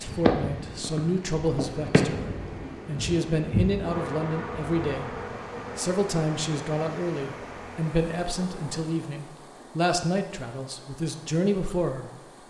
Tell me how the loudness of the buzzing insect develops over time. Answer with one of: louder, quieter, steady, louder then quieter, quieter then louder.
quieter.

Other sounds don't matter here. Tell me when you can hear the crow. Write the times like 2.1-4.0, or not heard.
not heard.